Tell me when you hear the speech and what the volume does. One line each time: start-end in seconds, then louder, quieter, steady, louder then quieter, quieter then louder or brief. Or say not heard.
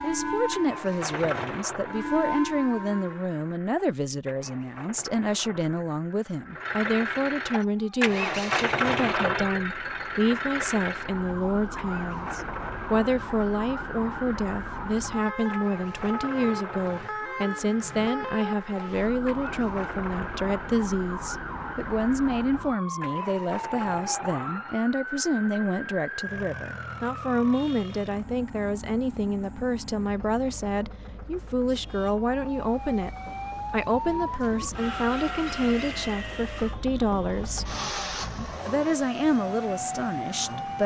0.0-40.8 steady.